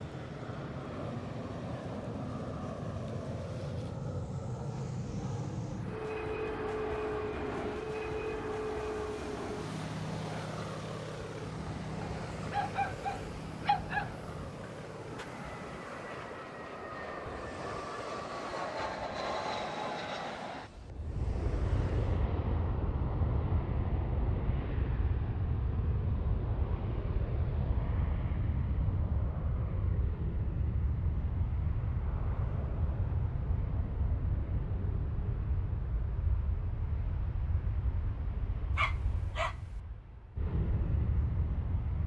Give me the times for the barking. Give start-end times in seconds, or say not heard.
12.0-14.1, 38.8-39.8.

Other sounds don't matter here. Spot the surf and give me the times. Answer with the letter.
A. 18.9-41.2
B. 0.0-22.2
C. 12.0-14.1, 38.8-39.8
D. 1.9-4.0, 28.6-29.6
B.